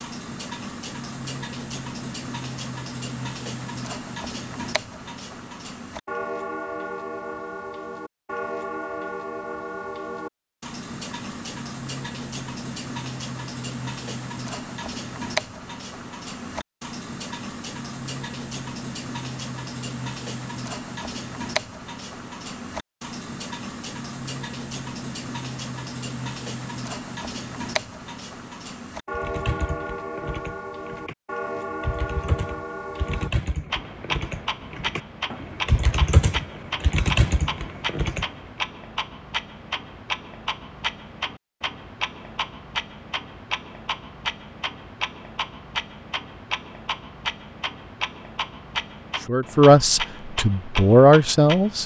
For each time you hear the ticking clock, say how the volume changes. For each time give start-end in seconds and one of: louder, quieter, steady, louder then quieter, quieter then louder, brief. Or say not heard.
0.0-51.8 steady.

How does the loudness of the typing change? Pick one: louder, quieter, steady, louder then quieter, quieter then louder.
louder.